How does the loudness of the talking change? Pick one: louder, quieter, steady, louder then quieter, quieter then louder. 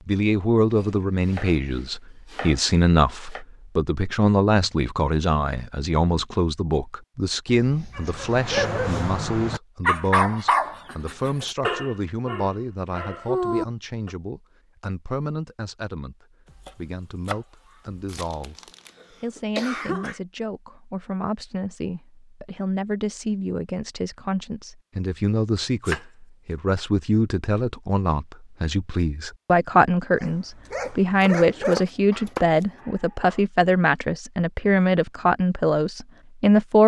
quieter then louder.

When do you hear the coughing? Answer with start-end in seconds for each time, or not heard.
18.1-20.2.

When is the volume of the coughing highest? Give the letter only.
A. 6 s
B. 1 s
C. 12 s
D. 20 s
D.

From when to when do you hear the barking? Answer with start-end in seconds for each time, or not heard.
8.0-14.1, 30.1-33.5.